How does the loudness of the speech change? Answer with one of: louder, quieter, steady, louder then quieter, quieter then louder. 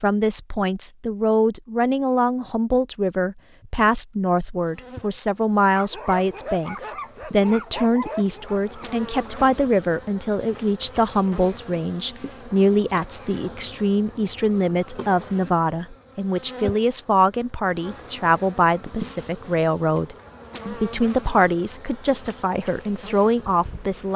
steady.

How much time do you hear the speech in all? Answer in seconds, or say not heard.
24 s.